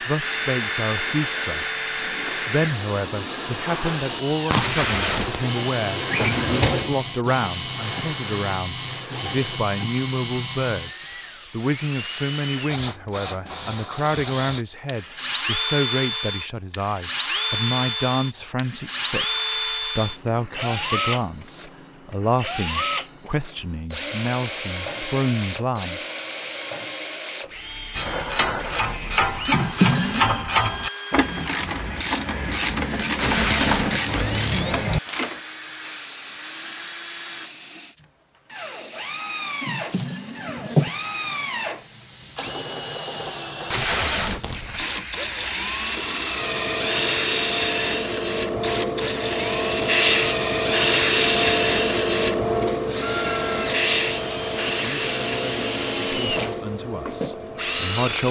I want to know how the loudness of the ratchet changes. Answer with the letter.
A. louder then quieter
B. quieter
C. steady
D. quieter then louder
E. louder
C.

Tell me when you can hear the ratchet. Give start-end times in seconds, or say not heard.
27.9-35.4.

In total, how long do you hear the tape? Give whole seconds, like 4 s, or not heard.
3 s.